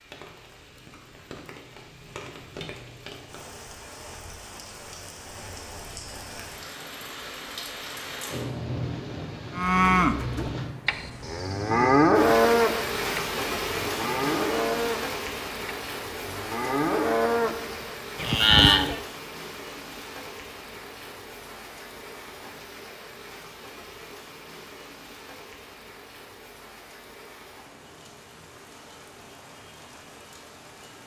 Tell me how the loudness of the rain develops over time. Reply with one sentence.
The loudness of the rain goes up, then down.